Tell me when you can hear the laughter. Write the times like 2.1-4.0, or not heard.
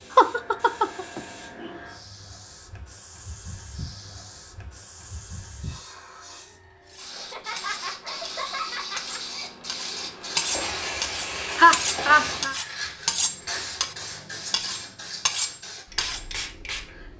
0.1-1.7, 7.2-9.5, 11.6-12.6.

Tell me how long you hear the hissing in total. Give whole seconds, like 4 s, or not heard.
17 s.